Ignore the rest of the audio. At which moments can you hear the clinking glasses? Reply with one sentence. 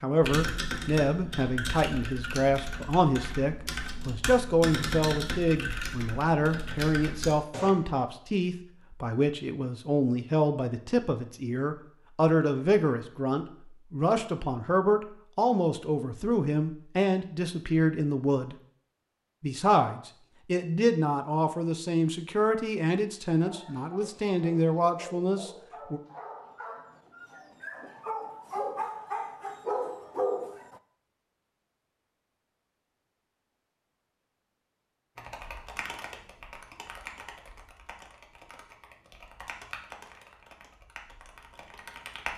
The clinking glasses can't be heard in this clip.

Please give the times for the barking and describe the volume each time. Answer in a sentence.
You can hear the barking from 23.4 to 30.8 s, getting louder.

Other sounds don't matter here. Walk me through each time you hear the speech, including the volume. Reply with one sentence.
You can hear the speech from 0.0 to 18.6 s, at a steady volume; and from 19.4 to 26.0 s, at a steady volume.